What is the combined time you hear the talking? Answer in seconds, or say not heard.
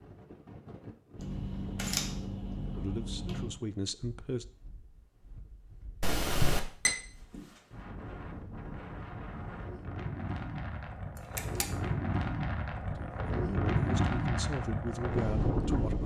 5 s.